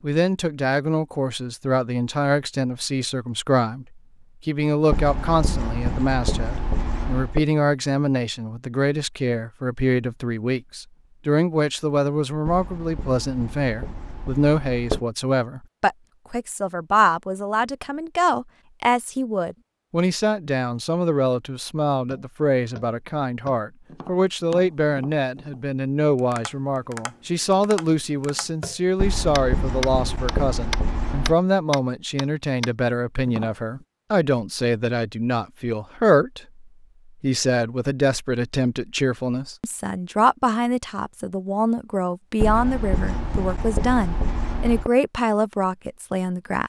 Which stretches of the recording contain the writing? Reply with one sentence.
The writing can be heard from 4.9 to 7.5 s, from 12.4 to 15.0 s, from 28.9 to 31.4 s and from 42.4 to 44.9 s.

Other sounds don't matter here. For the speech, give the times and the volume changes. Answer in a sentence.
The speech can be heard from 0.0 to 46.6 s, at a steady volume.